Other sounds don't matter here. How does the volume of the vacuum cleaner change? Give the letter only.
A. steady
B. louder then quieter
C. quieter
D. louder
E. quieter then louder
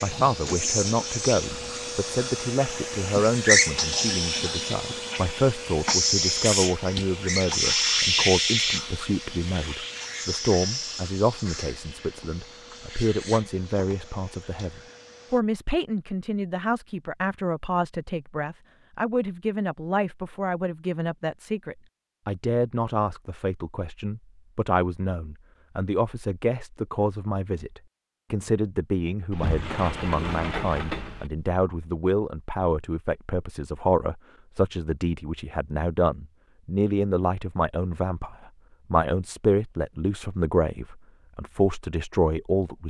B.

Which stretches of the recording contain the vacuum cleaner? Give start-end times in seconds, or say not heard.
0.0-15.4.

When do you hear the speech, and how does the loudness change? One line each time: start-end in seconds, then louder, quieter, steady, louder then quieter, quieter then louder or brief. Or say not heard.
0.0-42.8 steady.